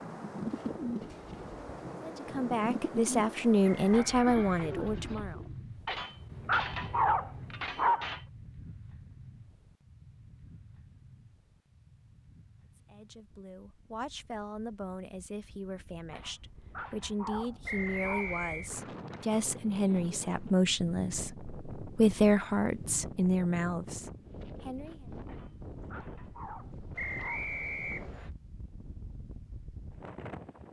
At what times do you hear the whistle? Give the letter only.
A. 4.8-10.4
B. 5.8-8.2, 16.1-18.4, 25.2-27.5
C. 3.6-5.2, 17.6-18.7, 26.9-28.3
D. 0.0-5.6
C.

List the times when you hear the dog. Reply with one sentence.
You can hear the dog from 5.8 to 8.2 s, from 16.1 to 18.4 s and from 25.2 to 27.5 s.